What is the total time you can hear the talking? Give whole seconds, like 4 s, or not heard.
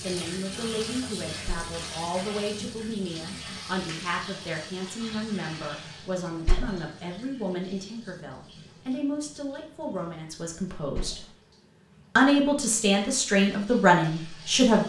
14 s.